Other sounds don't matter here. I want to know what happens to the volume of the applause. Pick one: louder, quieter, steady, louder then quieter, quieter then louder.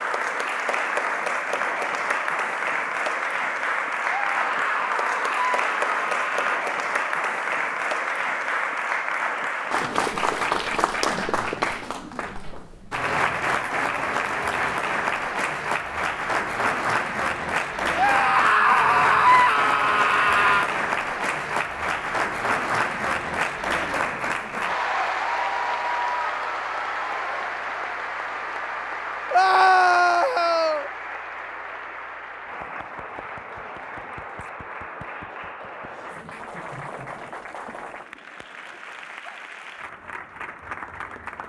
quieter.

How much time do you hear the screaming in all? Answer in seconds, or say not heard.
7 s.